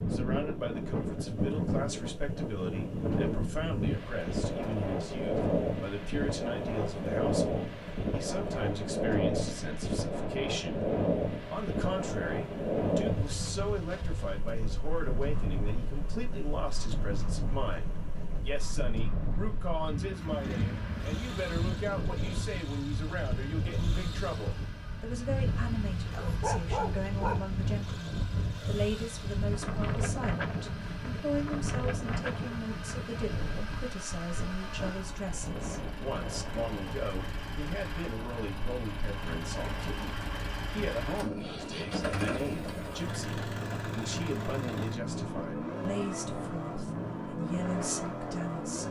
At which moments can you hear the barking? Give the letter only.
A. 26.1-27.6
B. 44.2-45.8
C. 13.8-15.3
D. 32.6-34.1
A.